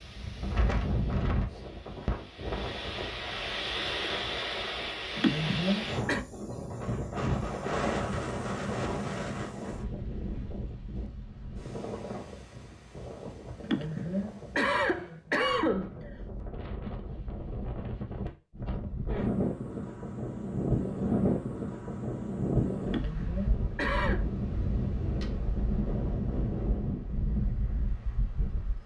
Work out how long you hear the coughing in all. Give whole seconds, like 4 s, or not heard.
5 s.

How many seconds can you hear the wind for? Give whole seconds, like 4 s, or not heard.
29 s.